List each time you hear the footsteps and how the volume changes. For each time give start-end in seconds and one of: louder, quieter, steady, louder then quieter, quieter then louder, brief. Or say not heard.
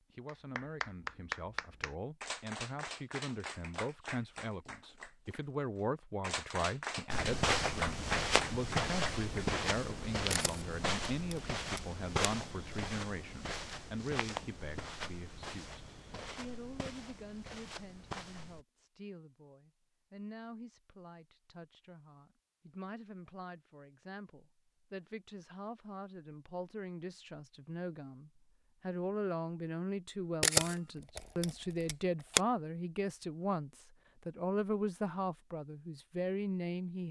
7.1-18.6 quieter.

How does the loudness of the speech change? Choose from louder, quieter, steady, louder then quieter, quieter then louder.
quieter then louder.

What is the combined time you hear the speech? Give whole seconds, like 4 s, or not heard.
37 s.